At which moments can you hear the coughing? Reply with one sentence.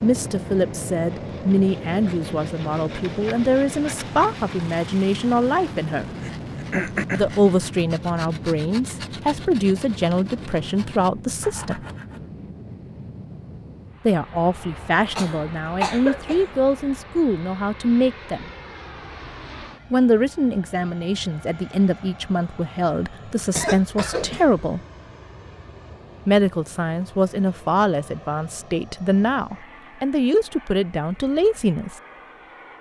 You can hear the coughing from 6.2 to 7.3 s, from 15.2 to 16.5 s and from 23.6 to 24.6 s.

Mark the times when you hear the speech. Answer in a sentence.
You can hear the speech from 0.0 to 6.1 s, from 7.1 to 11.8 s, from 14.1 to 18.5 s, from 19.9 to 24.8 s and from 26.2 to 31.9 s.